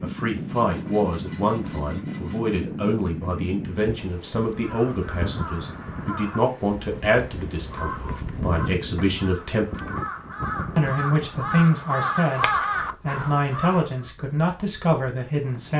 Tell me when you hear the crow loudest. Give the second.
13 s.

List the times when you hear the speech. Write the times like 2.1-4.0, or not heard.
0.0-9.7, 10.8-15.7.